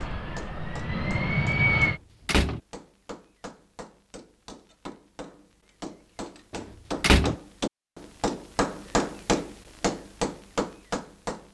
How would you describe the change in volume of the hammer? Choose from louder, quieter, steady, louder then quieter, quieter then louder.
louder.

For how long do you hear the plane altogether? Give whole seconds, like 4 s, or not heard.
2 s.